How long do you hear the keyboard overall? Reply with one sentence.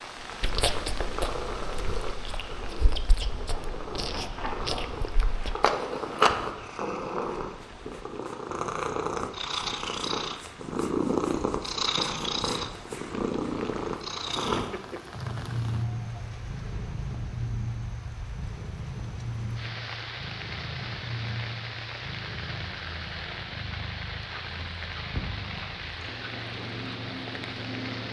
You can't hear the keyboard here.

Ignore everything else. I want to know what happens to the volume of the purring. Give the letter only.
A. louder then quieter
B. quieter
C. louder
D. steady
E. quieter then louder
A.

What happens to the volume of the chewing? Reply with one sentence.
The volume of the chewing goes down, then up.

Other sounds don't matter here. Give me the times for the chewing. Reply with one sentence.
You can hear the chewing from 0.4 to 6.5 s.